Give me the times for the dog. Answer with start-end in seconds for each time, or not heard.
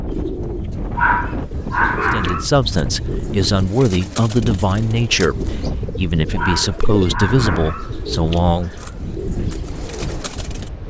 0.9-2.5, 6.3-8.9.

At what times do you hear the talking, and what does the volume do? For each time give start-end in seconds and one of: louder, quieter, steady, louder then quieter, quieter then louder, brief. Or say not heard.
2.1-8.8 steady.